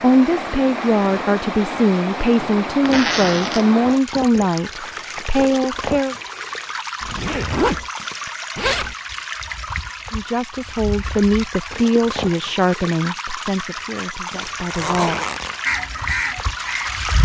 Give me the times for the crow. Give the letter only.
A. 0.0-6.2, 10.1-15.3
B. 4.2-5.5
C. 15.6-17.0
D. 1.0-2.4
C.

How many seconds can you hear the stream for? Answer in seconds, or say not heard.
17 s.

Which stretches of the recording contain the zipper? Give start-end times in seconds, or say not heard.
2.8-3.7, 7.0-8.9, 14.3-15.6.